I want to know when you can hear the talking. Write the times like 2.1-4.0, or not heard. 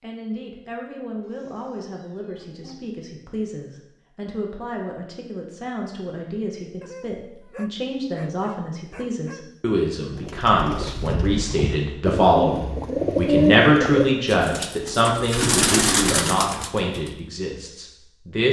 0.0-18.4.